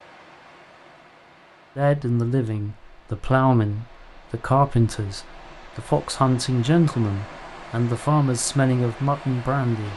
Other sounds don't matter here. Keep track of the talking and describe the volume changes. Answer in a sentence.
The loudness of the talking stays about the same.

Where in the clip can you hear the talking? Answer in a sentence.
The talking can be heard from 1.8 to 9.9 s.